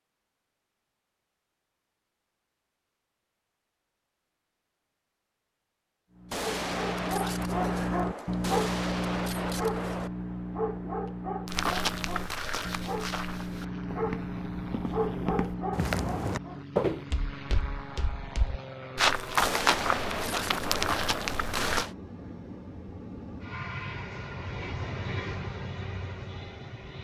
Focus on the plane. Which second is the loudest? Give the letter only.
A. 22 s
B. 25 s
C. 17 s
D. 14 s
B.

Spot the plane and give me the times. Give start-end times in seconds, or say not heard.
13.3-27.0.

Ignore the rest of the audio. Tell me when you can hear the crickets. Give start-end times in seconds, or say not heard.
not heard.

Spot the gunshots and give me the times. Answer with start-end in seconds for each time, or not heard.
6.3-10.1, 19.4-21.9.